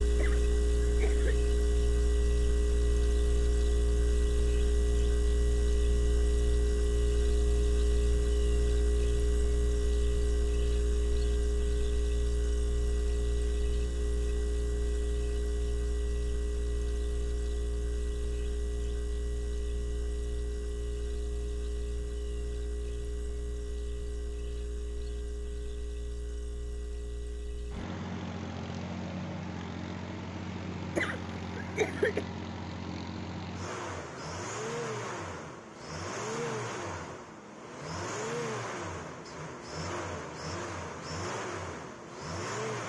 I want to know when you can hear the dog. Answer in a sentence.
You can't hear the dog here.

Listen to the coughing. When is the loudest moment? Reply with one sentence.
The volume of the coughing peaks at 32 seconds.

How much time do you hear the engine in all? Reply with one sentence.
The engine can be heard for 43 seconds in total.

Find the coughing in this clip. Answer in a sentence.
You can hear the coughing from 0.1 to 1.4 s and from 30.9 to 32.2 s.